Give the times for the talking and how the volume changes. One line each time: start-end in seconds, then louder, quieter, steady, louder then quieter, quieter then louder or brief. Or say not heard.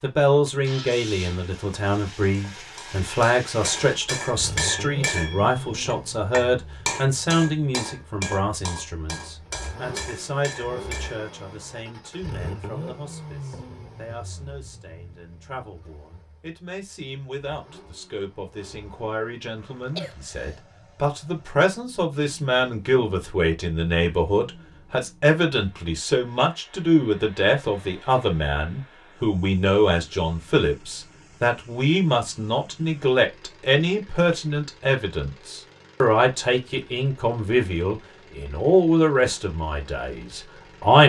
0.0-41.0 quieter then louder.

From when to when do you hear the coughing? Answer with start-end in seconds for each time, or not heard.
19.6-20.6.